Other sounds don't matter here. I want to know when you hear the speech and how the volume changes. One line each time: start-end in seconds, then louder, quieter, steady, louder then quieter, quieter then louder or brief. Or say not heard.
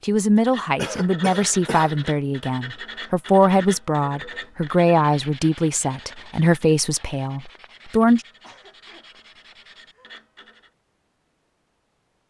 0.0-8.2 steady.